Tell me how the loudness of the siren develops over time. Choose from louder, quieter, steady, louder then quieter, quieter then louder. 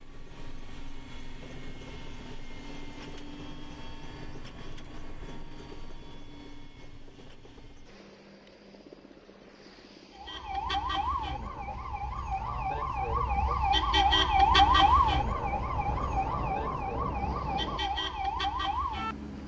louder then quieter.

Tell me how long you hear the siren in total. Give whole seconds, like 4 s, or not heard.
9 s.